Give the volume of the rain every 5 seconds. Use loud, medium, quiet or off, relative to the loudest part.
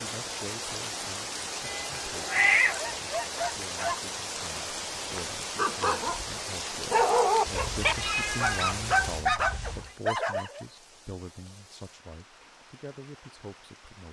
loud, loud, quiet.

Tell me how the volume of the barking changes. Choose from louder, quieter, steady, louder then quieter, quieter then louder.
louder.